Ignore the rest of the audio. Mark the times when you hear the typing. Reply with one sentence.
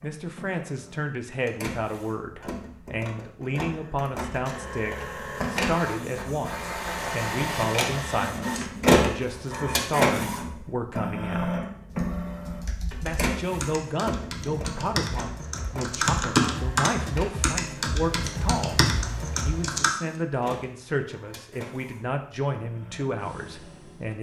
You can hear the typing from 11.9 to 19.9 s.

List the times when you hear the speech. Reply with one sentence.
You can hear the speech from 0.0 to 11.6 s, from 13.0 to 18.9 s and from 19.4 to 24.1 s.